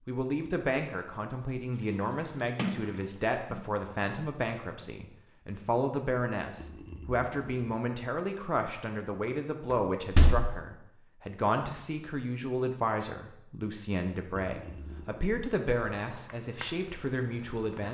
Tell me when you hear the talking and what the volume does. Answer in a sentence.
You can hear the talking from 0.1 to 17.8 s, at a steady volume.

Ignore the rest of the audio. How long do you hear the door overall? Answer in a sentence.
You can hear the door for 2 seconds altogether.